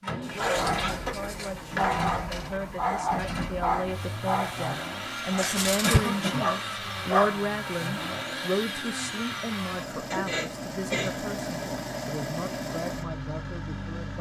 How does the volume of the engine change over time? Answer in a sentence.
The volume of the engine stays about the same.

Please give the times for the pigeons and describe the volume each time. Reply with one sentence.
You can't hear the pigeons here.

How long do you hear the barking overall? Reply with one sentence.
You can hear the barking for 7 seconds altogether.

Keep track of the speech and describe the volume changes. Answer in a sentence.
The loudness of the speech goes up, then down.